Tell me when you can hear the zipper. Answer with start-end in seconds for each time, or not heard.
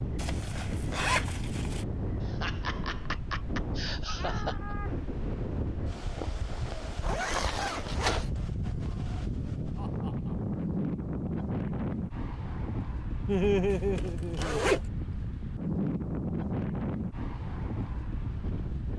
0.1-1.9, 7.0-8.3, 13.7-14.8.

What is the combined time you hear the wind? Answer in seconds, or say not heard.
19 s.